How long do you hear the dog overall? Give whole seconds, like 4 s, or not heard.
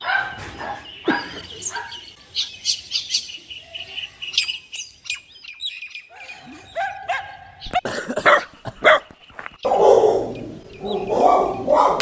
8 s.